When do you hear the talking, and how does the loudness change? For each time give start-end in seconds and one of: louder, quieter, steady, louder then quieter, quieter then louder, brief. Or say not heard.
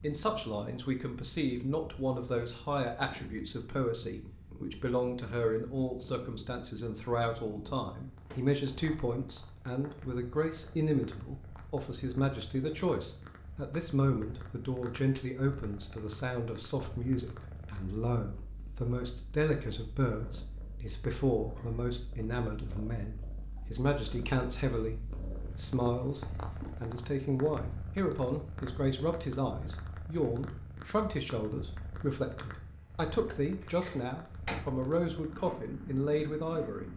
0.0-36.9 steady.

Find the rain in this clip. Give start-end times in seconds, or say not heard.
not heard.